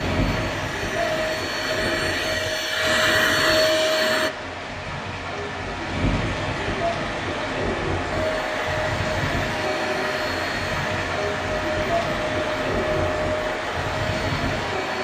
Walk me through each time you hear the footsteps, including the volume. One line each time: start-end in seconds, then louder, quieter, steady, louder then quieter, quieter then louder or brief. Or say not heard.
not heard.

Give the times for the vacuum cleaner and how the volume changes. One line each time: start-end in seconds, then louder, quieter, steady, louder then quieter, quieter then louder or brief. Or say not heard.
0.0-4.3 louder
8.1-14.9 steady.